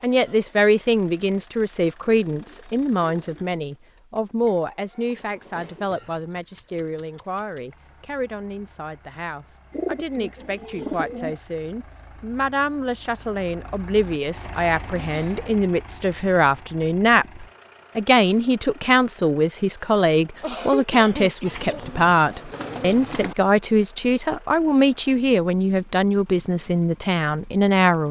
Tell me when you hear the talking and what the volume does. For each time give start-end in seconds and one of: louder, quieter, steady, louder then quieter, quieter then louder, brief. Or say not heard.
0.0-28.0 quieter then louder.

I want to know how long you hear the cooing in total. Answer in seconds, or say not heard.
5 s.